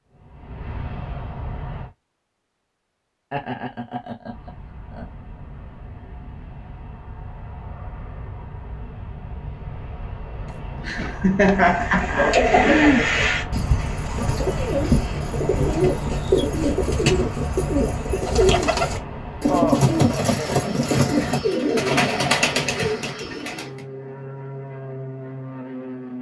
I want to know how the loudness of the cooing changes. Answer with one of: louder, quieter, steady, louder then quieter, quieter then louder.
steady.